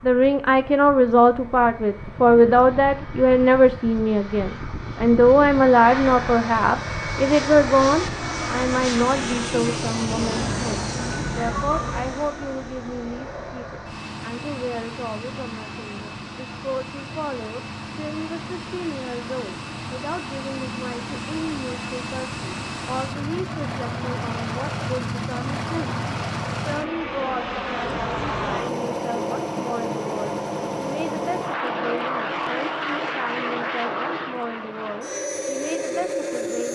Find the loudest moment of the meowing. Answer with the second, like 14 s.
12 s.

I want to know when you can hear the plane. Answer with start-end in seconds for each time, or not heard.
0.0-36.7.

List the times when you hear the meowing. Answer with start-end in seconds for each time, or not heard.
10.2-12.1, 27.9-28.6.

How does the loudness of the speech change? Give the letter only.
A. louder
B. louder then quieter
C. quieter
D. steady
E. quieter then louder
C.